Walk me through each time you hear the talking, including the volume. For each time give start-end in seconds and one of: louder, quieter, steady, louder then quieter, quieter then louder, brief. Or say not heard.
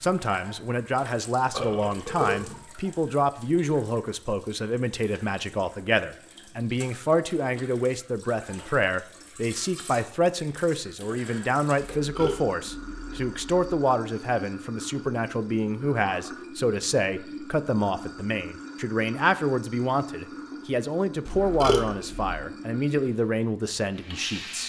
0.0-24.6 steady.